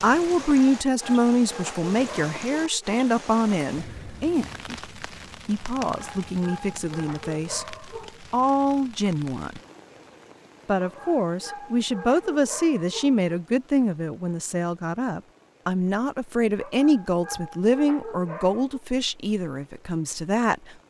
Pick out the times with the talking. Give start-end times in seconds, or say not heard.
0.0-9.6, 10.7-20.6.